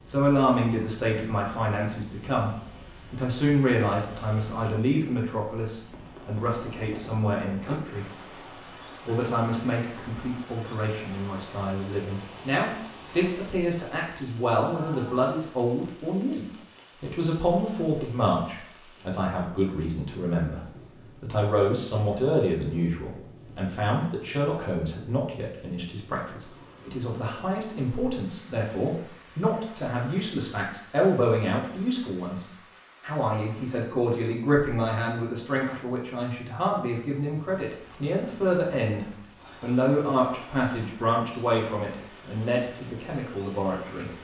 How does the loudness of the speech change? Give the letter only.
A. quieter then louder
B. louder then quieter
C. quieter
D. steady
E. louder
D.